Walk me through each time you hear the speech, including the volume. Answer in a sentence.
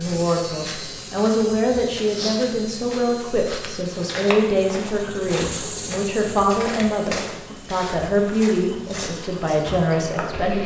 The speech can be heard from 0.0 to 10.6 s, at a steady volume.